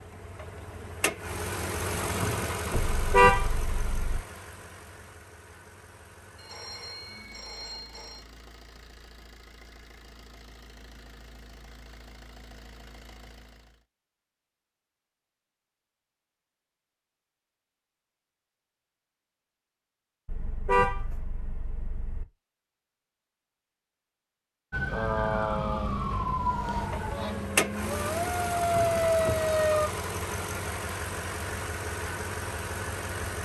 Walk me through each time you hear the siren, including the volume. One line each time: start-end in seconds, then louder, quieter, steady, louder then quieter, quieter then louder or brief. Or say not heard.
24.7-29.9 quieter then louder.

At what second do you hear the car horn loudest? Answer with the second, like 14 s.
3 s.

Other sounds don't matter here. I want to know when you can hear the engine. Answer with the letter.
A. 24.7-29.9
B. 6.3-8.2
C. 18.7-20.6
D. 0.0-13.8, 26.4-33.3
D.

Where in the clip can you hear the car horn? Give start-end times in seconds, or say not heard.
2.7-4.2, 20.2-22.2.